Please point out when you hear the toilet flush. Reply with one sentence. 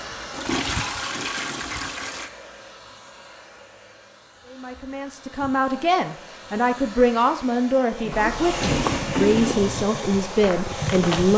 The toilet flush can be heard from 0.3 to 2.3 s and from 8.1 to 9.6 s.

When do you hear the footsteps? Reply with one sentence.
The footsteps can be heard from 8.5 to 11.3 s.